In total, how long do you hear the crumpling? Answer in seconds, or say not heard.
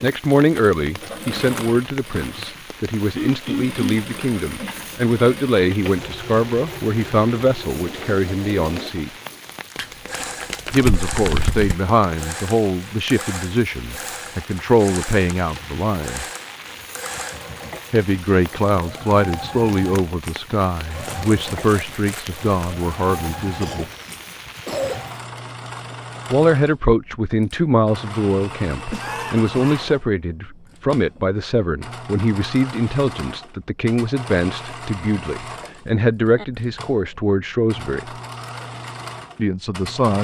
4 s.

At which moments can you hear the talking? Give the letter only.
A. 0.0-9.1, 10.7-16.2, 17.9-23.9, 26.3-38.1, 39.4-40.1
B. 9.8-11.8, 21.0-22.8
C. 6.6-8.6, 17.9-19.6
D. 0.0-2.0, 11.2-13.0
A.